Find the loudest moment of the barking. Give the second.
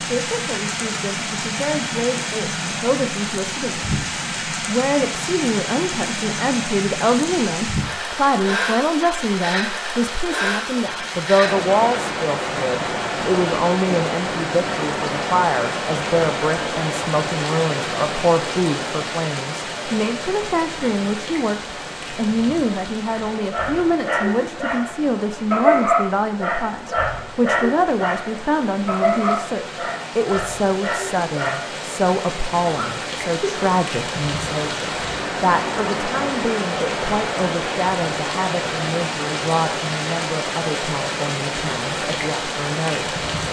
26 s.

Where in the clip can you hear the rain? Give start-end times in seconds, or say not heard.
0.0-43.4.